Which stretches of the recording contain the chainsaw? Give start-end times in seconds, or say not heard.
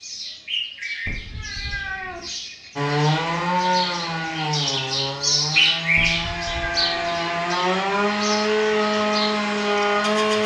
2.8-10.4.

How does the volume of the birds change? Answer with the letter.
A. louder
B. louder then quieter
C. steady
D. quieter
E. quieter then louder
B.